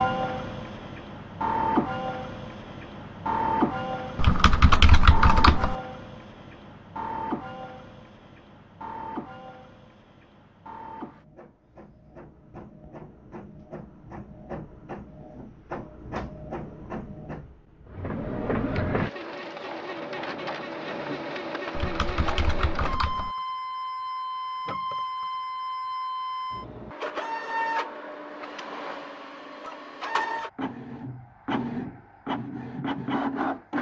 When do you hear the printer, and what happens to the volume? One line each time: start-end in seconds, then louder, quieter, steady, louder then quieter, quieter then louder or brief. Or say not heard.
0.0-33.7 quieter then louder.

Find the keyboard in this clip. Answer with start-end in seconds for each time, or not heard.
4.2-5.8, 21.8-23.3.